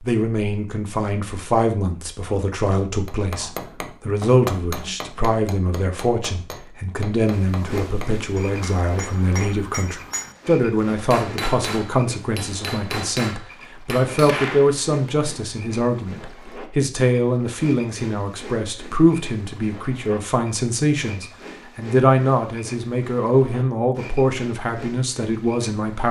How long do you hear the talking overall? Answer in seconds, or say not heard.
26 s.